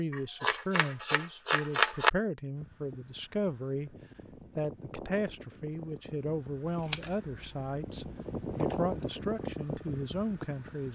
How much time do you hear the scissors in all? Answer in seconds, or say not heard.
4 s.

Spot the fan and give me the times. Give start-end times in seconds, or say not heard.
2.5-10.9.